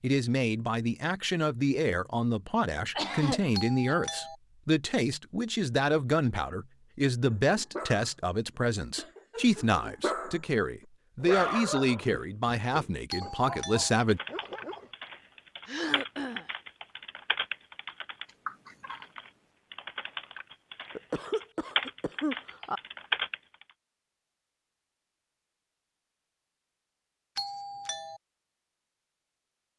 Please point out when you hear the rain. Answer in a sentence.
You can't hear the rain here.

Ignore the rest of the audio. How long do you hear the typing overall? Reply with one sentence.
You can hear the typing for 10 seconds altogether.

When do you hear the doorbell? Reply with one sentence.
The doorbell can be heard from 3.5 to 4.3 s, from 13.1 to 13.9 s and from 27.4 to 28.2 s.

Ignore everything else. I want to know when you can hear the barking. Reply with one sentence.
You can hear the barking from 7.2 to 8.1 s, from 8.9 to 10.4 s and from 11.2 to 14.9 s.